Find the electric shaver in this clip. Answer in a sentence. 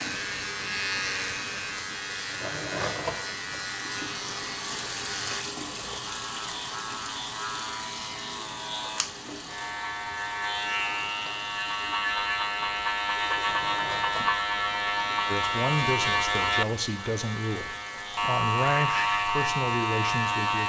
You can hear the electric shaver from 0.0 to 20.6 s.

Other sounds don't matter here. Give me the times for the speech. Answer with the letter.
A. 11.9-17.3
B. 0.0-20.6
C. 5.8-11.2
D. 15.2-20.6
D.